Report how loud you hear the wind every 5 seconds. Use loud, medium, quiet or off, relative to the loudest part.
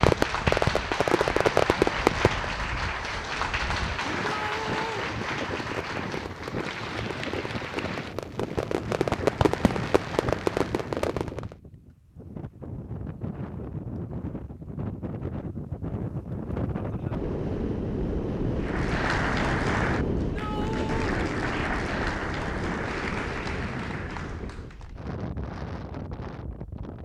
medium, medium, medium, loud, loud, medium.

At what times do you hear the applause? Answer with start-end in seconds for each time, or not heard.
0.0-11.1, 18.6-24.9.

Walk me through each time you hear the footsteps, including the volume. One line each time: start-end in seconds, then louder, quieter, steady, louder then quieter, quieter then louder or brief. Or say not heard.
not heard.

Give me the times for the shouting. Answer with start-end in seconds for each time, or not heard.
4.2-5.1, 20.1-21.2.